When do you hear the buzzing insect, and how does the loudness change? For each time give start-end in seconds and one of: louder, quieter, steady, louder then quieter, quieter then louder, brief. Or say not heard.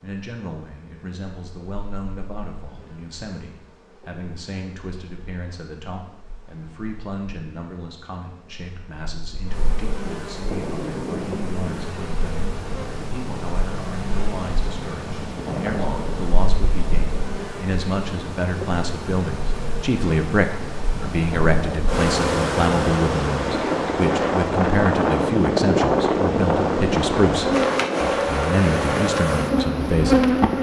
0.0-30.5 louder.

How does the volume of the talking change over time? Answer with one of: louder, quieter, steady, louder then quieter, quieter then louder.
louder.